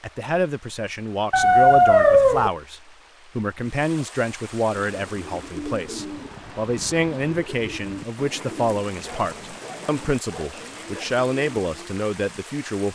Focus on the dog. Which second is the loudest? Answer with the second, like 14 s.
2 s.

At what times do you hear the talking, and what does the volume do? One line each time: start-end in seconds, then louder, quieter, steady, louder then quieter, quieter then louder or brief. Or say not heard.
0.0-12.9 steady.